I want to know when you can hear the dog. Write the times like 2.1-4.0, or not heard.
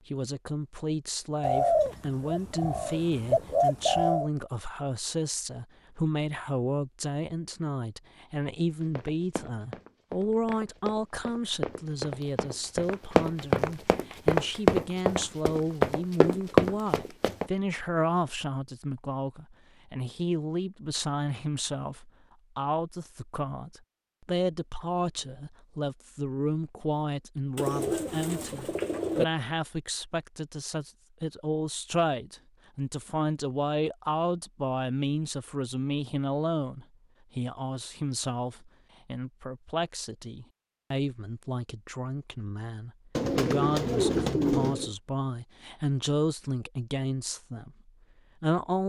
not heard.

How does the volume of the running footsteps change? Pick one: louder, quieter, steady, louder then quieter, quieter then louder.
louder.